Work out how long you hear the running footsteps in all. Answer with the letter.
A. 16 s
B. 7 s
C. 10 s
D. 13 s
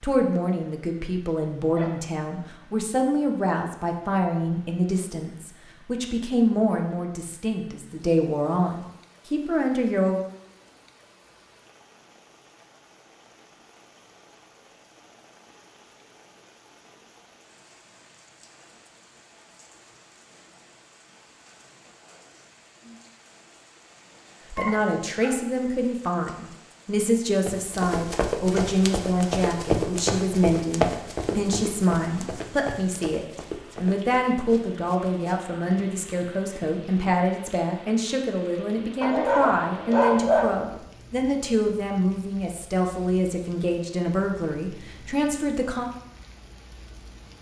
C.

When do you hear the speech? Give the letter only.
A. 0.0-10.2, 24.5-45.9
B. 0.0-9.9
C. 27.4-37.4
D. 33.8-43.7
A.